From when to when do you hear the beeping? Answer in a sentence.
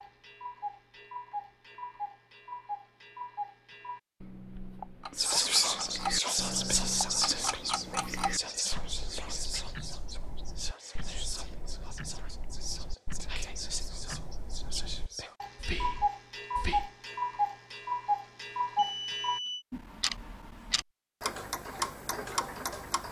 The beeping can be heard from 18.8 to 19.6 s.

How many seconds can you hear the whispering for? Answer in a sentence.
You can hear the whispering for 12 seconds altogether.